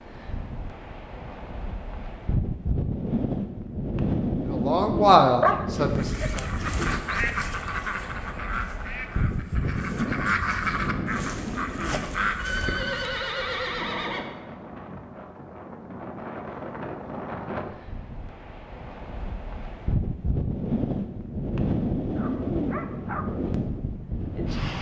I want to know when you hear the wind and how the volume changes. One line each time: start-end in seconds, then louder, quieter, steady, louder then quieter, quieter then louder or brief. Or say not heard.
0.0-24.7 quieter then louder.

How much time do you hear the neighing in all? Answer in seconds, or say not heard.
2 s.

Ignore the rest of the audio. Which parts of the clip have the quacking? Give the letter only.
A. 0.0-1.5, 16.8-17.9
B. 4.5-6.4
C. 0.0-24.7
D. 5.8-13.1
D.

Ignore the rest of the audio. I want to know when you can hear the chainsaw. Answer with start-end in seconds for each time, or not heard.
not heard.